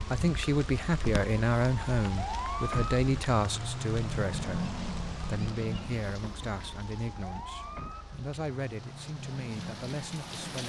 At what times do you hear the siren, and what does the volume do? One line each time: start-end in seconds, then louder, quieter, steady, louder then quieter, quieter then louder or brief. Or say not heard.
0.0-10.3 louder then quieter.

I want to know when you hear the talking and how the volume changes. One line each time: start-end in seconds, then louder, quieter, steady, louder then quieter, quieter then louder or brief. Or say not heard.
0.0-10.6 quieter.